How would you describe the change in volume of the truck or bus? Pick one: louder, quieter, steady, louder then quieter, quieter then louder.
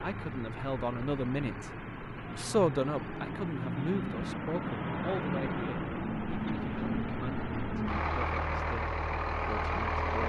louder.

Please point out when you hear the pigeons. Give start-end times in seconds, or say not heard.
not heard.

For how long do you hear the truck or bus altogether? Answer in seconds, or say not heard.
10 s.